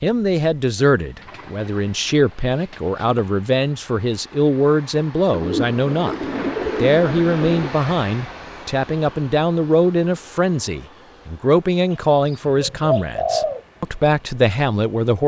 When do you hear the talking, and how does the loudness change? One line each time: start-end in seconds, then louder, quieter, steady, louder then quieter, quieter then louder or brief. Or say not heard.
0.0-15.2 steady.